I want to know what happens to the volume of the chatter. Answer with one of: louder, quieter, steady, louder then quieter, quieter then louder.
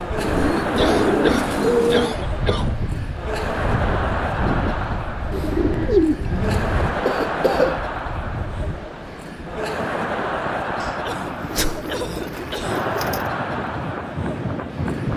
steady.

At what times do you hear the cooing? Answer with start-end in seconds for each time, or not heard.
0.1-2.1, 5.3-6.8, 11.2-13.3.